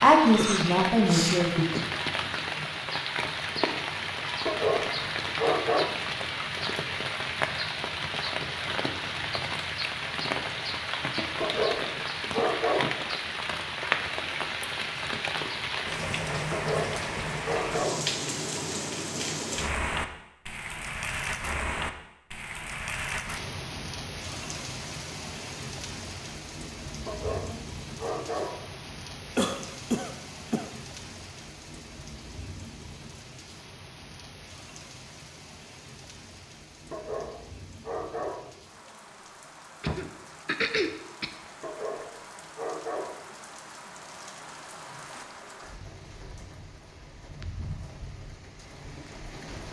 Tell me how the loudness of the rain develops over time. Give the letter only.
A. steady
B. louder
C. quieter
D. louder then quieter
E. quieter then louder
C.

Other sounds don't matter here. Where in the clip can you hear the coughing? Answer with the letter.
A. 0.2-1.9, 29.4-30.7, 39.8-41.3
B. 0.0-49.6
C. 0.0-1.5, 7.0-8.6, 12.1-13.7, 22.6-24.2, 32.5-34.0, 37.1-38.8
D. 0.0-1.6
A.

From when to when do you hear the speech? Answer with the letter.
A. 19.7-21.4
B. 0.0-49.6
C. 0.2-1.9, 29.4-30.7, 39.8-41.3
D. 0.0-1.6
D.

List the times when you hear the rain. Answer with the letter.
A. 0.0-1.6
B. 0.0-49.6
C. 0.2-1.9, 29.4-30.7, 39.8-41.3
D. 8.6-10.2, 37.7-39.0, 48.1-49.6
B.